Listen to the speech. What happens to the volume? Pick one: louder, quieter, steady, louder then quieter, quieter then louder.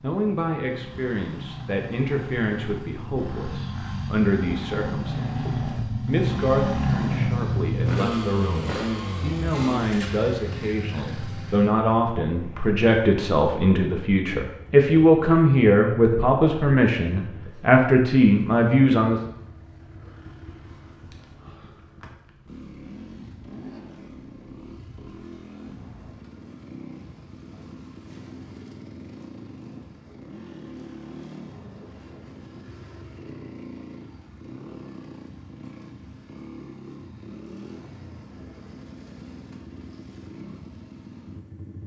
louder.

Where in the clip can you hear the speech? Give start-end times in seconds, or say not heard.
0.0-19.2.